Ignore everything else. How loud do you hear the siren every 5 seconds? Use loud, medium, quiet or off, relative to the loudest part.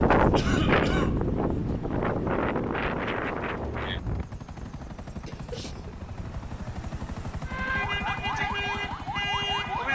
off, loud.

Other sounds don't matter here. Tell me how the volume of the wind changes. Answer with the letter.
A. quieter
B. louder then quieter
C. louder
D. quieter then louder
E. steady
A.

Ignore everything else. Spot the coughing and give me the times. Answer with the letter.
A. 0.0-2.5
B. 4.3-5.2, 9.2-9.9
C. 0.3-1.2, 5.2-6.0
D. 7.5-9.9
C.